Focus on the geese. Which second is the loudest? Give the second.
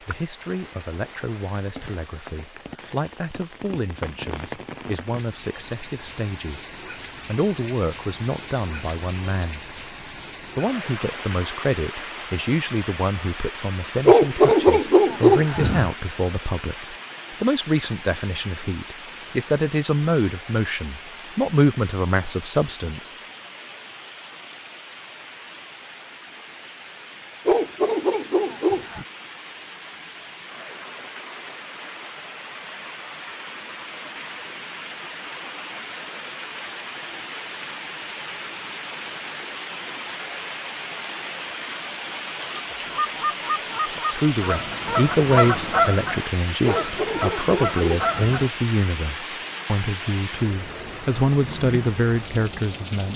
46 s.